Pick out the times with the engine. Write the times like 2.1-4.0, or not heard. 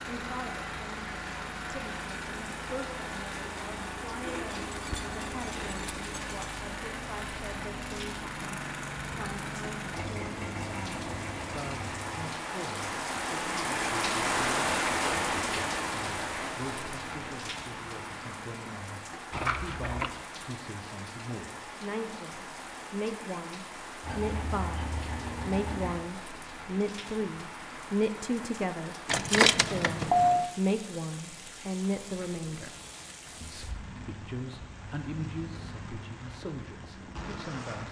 0.0-12.3, 24.0-25.9.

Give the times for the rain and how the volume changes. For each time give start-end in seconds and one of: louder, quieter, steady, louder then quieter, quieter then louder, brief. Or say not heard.
0.0-37.8 louder then quieter.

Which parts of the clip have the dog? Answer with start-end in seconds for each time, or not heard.
not heard.